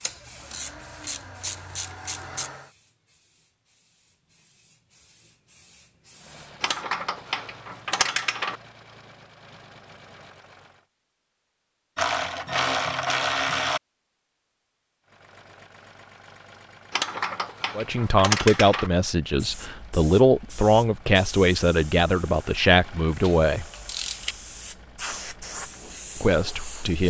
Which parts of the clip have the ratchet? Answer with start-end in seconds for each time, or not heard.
0.0-2.5, 6.6-8.6, 11.9-13.8, 16.9-18.9, 23.2-24.4.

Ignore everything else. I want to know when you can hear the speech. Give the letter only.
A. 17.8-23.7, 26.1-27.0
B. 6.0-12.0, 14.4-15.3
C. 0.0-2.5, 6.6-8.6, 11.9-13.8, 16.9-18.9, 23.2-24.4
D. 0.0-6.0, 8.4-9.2
A.